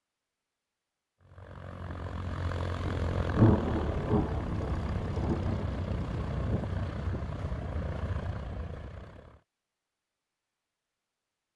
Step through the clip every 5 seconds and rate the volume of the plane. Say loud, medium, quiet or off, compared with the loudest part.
loud, loud, off.